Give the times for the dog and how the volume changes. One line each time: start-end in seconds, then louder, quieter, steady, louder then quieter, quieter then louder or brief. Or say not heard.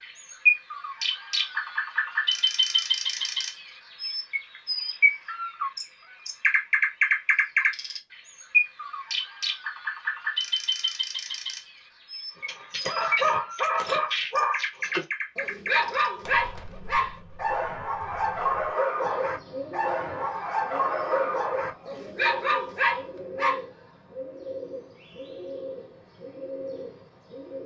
12.4-23.6 steady.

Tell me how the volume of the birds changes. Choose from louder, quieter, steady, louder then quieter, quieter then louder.
quieter.